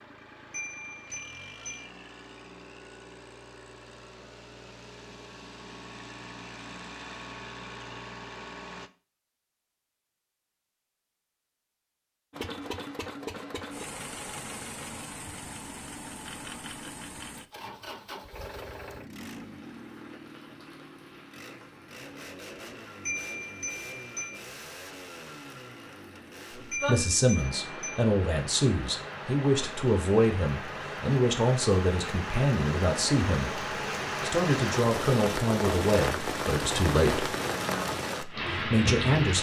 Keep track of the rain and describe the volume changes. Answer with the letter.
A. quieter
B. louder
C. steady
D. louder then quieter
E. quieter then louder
B.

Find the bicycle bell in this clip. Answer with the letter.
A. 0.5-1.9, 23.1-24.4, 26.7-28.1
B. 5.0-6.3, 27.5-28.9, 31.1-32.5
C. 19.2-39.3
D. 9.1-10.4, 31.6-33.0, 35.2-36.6
A.